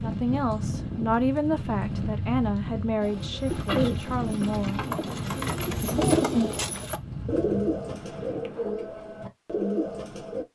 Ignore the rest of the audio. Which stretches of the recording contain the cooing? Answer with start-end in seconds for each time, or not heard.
3.0-10.4.